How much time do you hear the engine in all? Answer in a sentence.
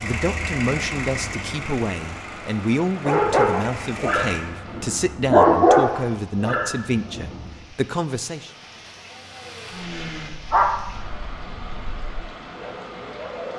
You can hear the engine for 6 seconds altogether.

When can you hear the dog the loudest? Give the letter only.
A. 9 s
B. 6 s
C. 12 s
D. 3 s
B.